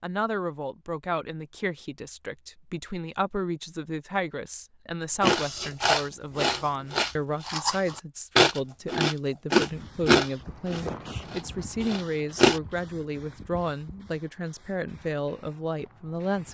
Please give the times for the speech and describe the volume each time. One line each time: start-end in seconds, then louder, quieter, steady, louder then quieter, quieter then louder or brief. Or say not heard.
0.0-16.5 steady.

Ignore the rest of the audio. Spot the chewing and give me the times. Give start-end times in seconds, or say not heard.
5.2-12.6.